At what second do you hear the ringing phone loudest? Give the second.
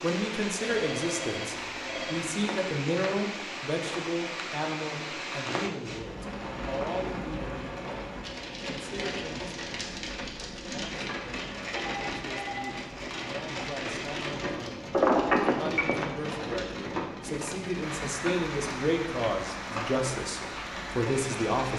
15 s.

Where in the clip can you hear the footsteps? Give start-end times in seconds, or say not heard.
not heard.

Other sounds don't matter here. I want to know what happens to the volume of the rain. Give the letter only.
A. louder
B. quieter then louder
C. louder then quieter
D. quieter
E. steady
E.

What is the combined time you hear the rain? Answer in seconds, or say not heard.
22 s.